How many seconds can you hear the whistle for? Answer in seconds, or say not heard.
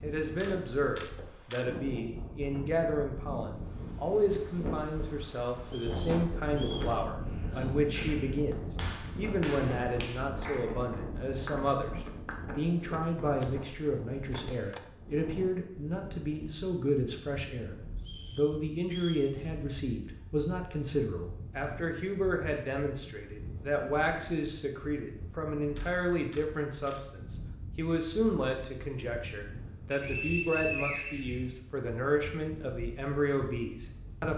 4 s.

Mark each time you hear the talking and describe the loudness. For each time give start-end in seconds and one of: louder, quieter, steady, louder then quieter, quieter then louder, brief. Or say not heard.
0.0-34.3 steady.